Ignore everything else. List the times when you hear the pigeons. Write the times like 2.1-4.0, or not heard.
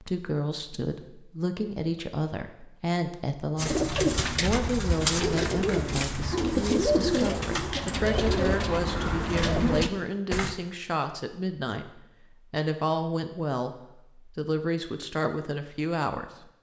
3.5-10.6.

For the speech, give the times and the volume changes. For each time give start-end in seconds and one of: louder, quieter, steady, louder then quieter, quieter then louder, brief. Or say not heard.
0.0-16.5 steady.